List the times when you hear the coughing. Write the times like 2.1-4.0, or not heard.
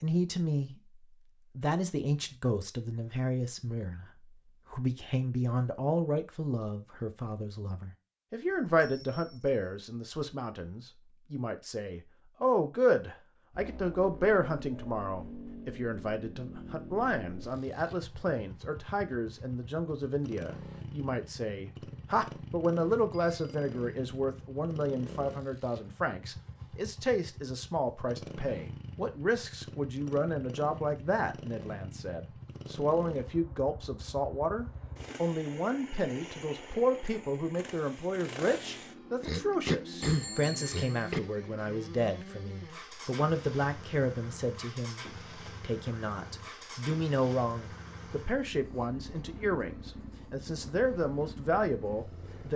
39.2-41.2.